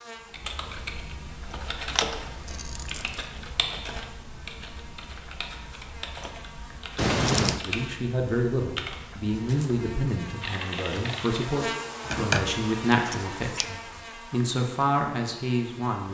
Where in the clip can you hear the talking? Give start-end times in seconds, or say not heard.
7.6-16.1.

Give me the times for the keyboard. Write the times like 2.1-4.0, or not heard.
0.3-11.6.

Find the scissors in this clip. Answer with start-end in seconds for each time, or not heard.
1.9-3.2, 7.0-7.6, 12.1-13.7.